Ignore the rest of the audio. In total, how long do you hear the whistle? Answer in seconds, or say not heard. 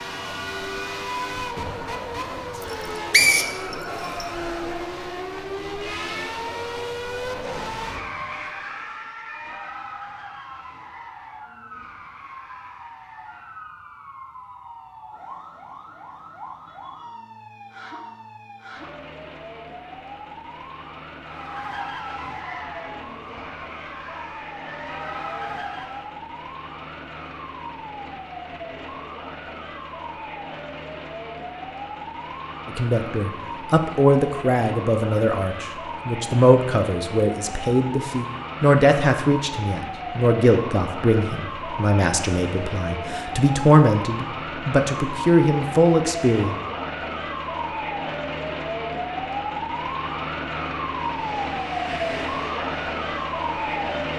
2 s.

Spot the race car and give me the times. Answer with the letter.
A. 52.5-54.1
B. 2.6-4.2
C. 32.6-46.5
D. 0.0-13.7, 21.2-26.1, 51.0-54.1
D.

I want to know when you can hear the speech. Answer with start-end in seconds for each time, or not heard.
32.6-46.5.